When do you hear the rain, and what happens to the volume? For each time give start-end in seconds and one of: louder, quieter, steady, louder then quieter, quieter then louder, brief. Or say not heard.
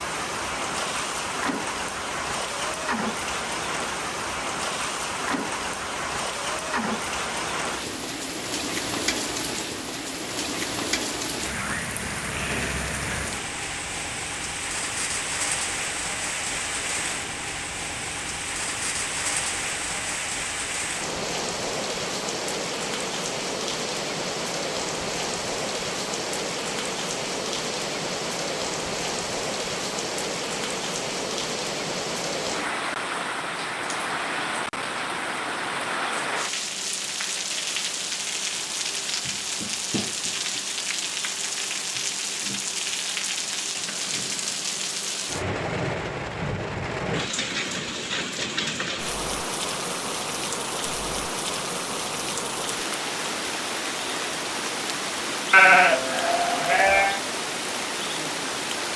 0.0-58.9 steady.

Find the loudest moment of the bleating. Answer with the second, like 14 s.
56 s.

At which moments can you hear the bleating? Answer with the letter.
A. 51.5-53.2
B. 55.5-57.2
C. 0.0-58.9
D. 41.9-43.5
B.